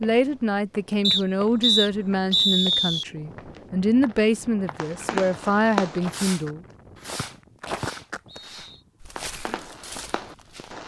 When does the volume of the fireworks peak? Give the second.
6 s.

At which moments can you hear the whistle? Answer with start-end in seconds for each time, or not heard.
1.0-3.0, 7.2-8.8.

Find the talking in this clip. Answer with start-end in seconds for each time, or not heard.
0.0-6.6.